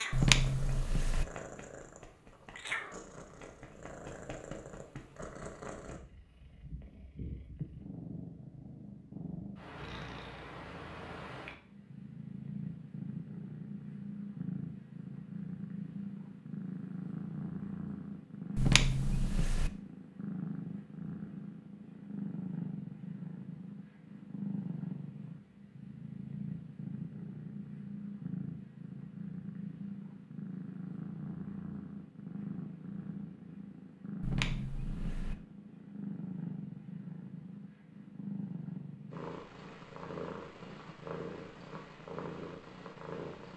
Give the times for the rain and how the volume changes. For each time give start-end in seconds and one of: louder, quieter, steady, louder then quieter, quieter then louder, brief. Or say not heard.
not heard.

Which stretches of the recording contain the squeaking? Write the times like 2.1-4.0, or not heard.
0.1-1.2, 18.6-19.7, 34.2-35.4.